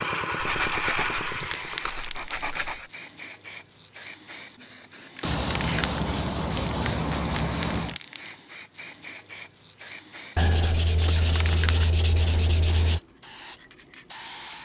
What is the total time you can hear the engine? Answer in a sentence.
You can hear the engine for 2 seconds altogether.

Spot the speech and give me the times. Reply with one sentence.
The speech can't be heard in this clip.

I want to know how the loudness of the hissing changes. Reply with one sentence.
The loudness of the hissing stays about the same.